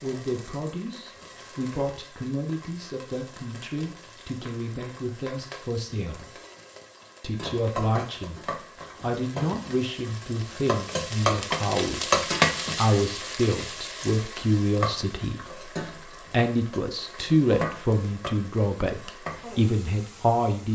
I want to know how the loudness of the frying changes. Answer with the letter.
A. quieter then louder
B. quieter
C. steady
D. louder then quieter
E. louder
D.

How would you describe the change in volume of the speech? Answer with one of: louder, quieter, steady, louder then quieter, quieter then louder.
louder.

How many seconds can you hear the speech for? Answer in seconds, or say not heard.
20 s.